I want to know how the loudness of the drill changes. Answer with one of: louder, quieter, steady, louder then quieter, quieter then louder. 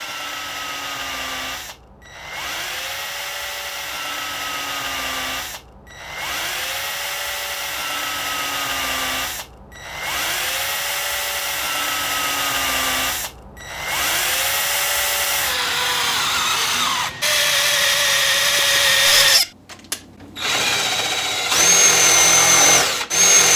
louder.